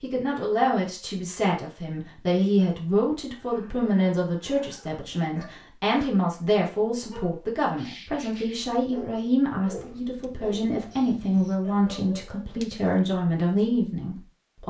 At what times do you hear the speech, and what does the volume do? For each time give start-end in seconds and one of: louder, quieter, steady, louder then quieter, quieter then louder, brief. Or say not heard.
0.0-14.6 steady.